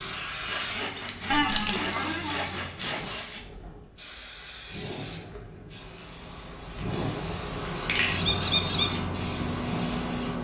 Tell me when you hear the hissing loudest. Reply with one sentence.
The volume of the hissing peaks at 8 seconds.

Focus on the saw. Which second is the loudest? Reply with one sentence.
The volume of the saw peaks at 2 seconds.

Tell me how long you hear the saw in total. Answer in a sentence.
You can hear the saw for 3 seconds altogether.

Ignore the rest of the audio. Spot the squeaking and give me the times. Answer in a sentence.
The squeaking can be heard from 1.3 to 2.5 s and from 8.1 to 8.9 s.